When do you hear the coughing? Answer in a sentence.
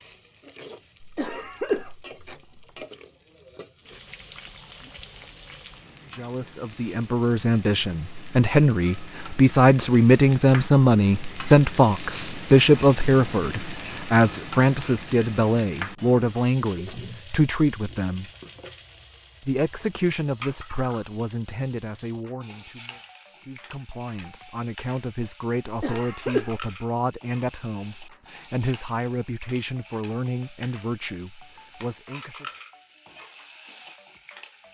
The coughing can be heard from 1.0 to 2.6 s and from 25.6 to 26.6 s.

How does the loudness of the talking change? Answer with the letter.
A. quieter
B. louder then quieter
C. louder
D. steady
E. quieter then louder
A.